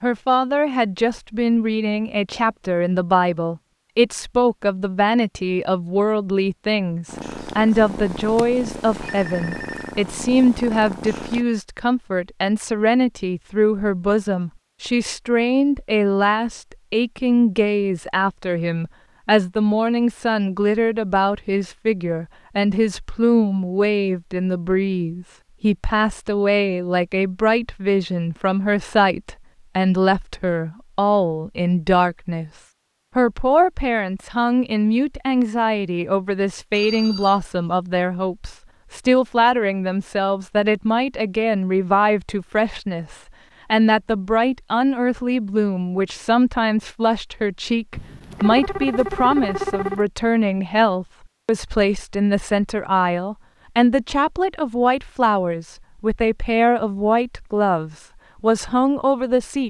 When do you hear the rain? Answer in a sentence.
The rain can't be heard in this clip.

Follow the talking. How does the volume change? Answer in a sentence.
The loudness of the talking stays about the same.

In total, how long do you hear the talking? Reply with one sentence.
The talking can be heard for 59 seconds in total.